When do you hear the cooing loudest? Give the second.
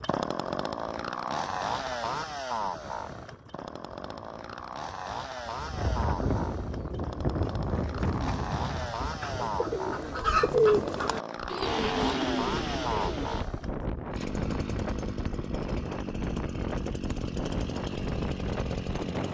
11 s.